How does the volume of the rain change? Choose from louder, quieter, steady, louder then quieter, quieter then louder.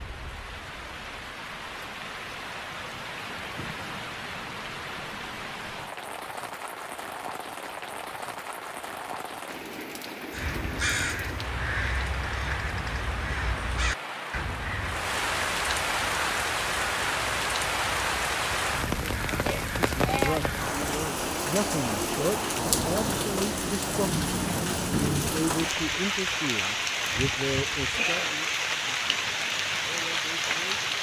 louder.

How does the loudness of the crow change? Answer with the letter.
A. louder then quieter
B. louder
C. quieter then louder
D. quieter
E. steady
D.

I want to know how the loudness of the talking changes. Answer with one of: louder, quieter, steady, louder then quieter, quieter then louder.
quieter.